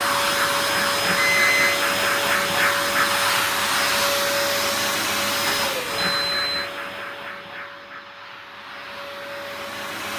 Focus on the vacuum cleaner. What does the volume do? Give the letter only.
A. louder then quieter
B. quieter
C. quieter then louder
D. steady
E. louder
B.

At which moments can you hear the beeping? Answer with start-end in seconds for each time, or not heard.
1.1-1.8, 6.0-6.5.